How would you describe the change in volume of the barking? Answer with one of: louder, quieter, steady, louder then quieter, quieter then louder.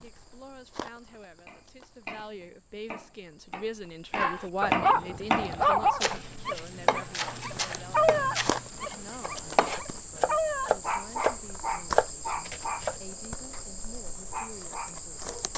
quieter.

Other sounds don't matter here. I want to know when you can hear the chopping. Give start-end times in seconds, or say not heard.
1.4-13.0.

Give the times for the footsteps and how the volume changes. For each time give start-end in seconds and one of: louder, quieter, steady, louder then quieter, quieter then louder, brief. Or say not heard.
not heard.